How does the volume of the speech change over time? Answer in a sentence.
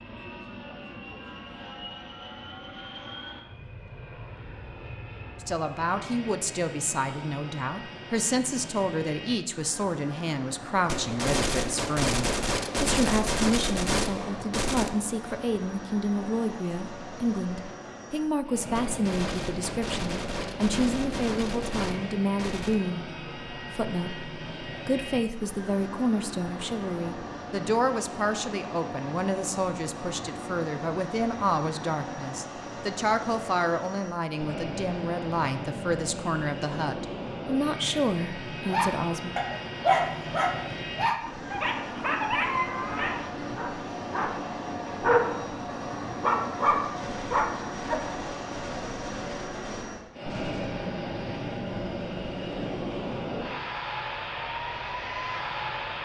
The volume of the speech stays about the same.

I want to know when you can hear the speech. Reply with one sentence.
You can hear the speech from 5.4 to 39.4 s.